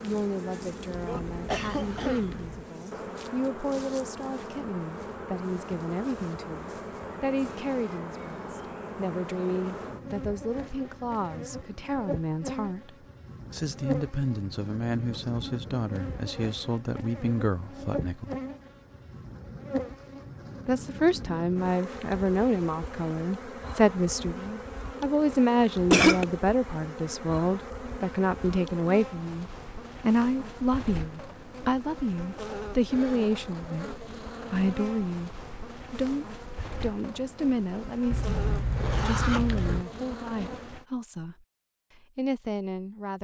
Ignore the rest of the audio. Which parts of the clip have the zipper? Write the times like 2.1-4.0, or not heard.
0.9-2.6, 38.1-39.9.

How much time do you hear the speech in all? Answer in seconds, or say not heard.
40 s.